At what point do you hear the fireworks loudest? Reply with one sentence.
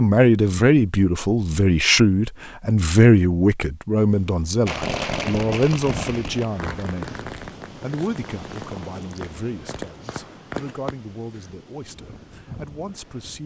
The volume of the fireworks peaks at 5 seconds.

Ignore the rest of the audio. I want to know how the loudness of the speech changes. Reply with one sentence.
The volume of the speech goes down.